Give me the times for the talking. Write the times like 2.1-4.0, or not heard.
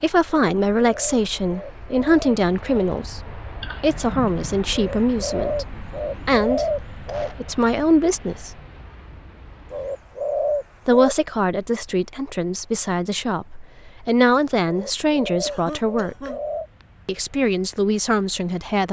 0.0-8.5, 10.8-16.3, 17.1-18.8.